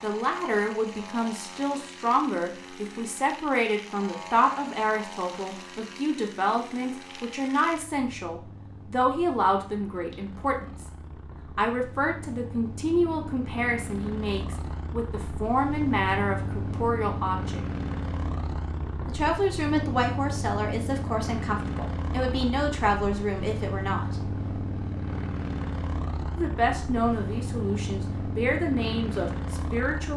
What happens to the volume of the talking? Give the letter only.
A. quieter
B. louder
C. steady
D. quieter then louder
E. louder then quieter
C.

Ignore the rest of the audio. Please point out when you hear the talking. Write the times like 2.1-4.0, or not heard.
0.0-10.9, 11.6-17.6, 19.1-24.2, 26.4-30.1.